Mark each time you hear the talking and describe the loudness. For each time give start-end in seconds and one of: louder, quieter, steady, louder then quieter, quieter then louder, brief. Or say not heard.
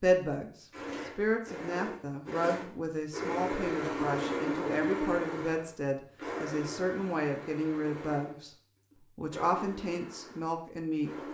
0.0-8.5 steady
9.2-11.1 brief.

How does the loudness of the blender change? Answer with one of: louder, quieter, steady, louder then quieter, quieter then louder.
louder then quieter.